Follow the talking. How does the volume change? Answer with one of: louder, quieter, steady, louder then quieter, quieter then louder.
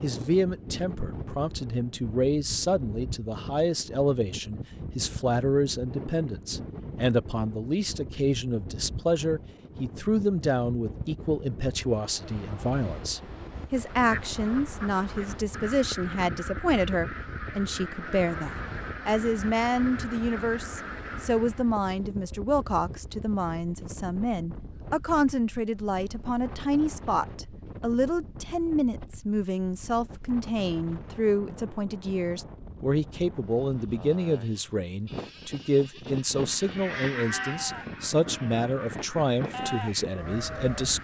steady.